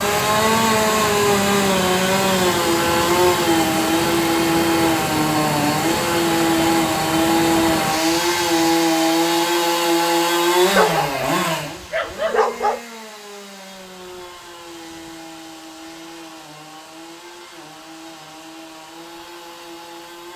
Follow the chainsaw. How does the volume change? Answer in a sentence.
The loudness of the chainsaw goes down.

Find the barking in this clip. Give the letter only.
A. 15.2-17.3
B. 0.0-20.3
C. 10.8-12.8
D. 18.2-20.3
C.